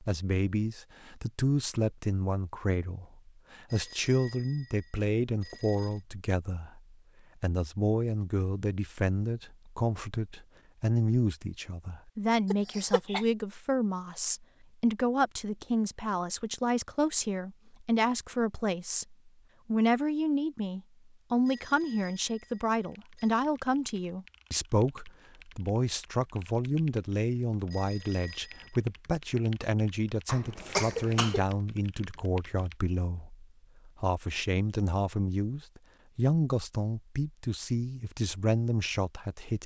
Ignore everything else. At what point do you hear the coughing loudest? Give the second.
31 s.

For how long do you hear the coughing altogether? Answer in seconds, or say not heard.
2 s.